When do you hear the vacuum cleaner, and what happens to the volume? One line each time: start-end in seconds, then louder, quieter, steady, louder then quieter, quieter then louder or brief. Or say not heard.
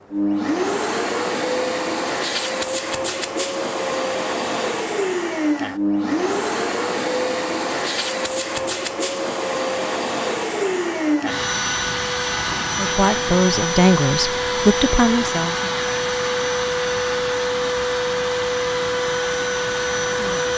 0.1-20.5 steady.